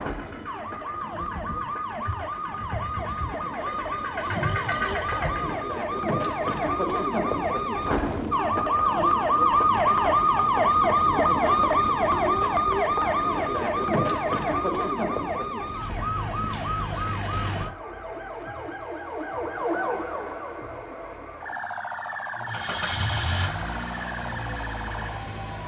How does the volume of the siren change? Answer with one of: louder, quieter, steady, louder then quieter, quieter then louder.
louder then quieter.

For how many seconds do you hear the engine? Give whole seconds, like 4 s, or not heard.
9 s.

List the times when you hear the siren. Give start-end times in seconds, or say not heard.
0.0-25.4.